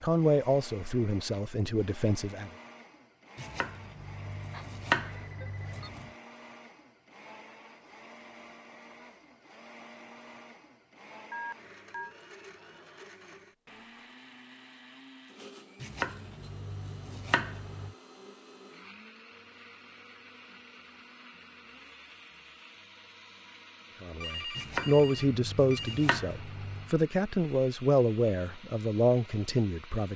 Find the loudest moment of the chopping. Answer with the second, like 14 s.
5 s.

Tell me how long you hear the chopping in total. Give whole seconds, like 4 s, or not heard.
7 s.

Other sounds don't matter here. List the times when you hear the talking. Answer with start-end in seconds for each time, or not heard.
0.0-2.5, 24.0-30.1.